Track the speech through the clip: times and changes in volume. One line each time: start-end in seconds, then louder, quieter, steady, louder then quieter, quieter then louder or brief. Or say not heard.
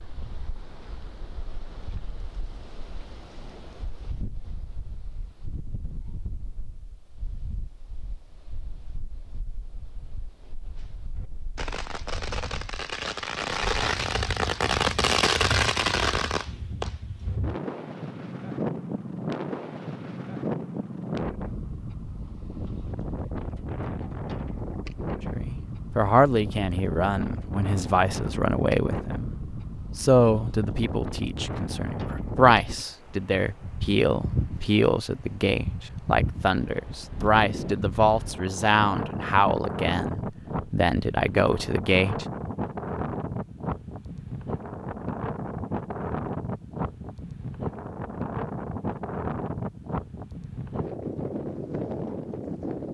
25.2-42.2 steady.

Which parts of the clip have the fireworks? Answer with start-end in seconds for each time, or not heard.
10.8-17.4.